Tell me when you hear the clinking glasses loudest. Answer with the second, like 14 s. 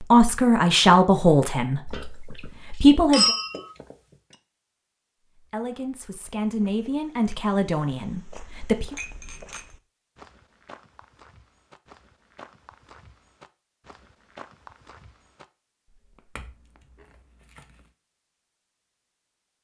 3 s.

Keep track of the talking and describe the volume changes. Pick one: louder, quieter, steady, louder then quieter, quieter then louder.
quieter.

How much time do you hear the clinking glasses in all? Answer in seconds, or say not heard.
4 s.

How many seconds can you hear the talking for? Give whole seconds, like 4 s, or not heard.
7 s.